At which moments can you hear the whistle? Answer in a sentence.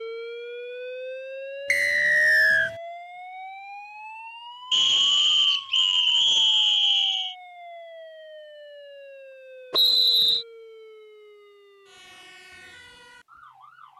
You can hear the whistle from 1.7 to 2.7 s, from 4.7 to 7.3 s and from 9.7 to 10.4 s.